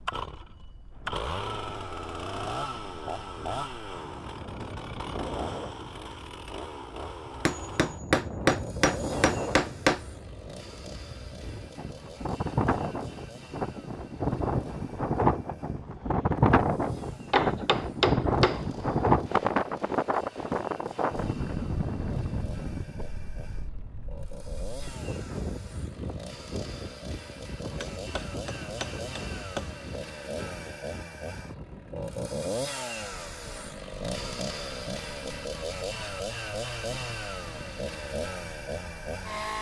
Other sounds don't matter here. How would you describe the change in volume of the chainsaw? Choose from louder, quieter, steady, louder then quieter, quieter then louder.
quieter then louder.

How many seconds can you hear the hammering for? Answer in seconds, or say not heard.
6 s.